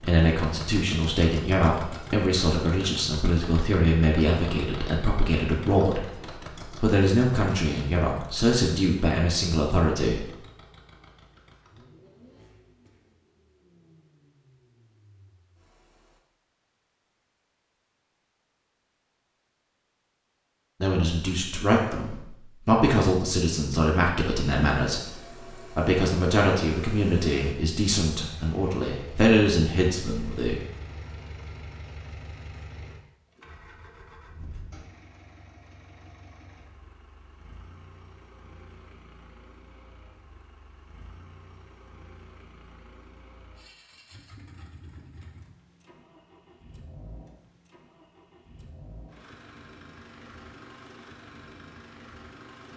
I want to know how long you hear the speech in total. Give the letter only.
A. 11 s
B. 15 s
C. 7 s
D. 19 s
D.